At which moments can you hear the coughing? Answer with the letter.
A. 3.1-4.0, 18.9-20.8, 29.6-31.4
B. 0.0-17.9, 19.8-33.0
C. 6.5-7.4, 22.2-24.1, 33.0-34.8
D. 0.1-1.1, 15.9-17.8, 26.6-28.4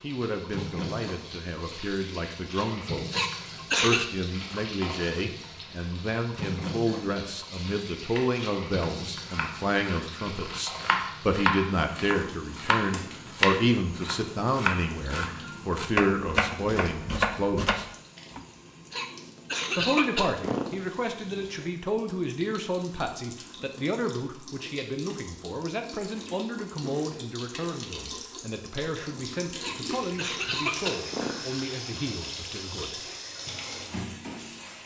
A.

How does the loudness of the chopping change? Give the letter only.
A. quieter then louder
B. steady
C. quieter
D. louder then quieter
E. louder
E.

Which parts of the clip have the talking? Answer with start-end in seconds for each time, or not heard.
0.0-17.9, 19.8-33.0.